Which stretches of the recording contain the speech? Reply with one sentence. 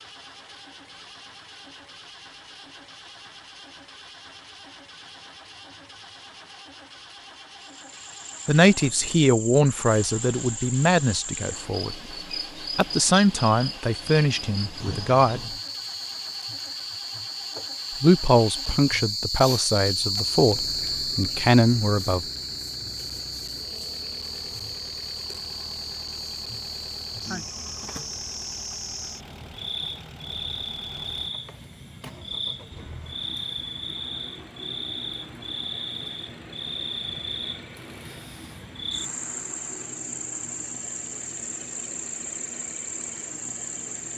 You can hear the speech from 8.4 to 11.9 s, from 12.8 to 15.5 s and from 18.0 to 22.2 s.